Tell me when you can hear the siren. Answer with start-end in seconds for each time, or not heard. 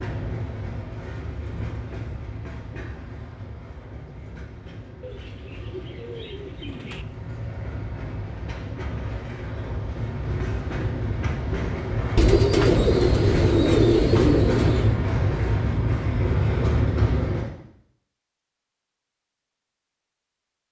not heard.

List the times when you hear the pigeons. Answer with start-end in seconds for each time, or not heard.
5.0-7.0, 12.2-15.0.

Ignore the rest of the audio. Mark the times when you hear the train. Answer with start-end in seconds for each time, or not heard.
0.0-17.5.